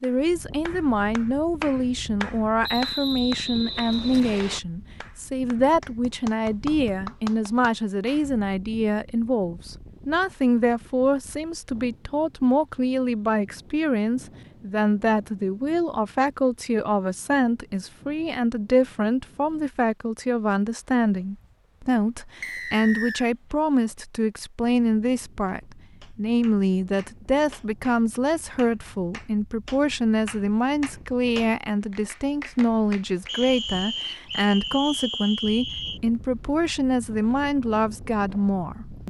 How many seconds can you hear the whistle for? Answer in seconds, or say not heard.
6 s.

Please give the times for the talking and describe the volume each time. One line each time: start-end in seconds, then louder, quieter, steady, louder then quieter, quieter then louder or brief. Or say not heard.
0.0-39.0 steady.